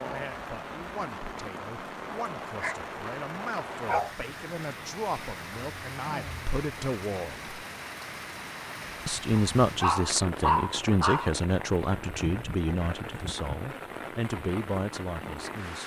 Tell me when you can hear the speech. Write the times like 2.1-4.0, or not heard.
0.0-7.5, 9.1-15.8.